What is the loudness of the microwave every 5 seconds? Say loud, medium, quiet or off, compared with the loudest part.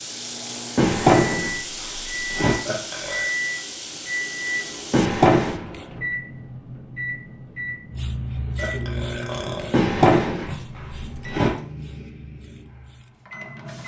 loud, loud, medium.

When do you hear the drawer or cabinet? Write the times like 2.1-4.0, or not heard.
0.8-2.5, 4.9-5.6, 9.7-11.5.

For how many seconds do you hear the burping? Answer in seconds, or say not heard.
2 s.